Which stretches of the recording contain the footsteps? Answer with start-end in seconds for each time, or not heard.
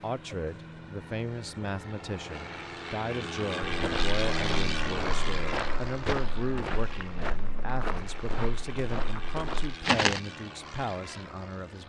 3.6-10.2.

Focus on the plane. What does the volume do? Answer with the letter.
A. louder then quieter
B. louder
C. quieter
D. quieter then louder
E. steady
A.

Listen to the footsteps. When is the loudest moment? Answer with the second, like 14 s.
10 s.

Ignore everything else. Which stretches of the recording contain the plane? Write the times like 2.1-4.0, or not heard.
0.0-11.8.